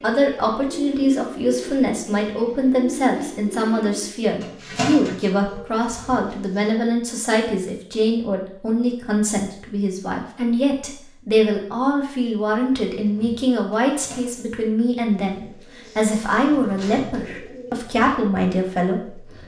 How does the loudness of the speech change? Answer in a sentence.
The loudness of the speech stays about the same.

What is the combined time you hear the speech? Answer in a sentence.
The speech can be heard for 19 seconds in total.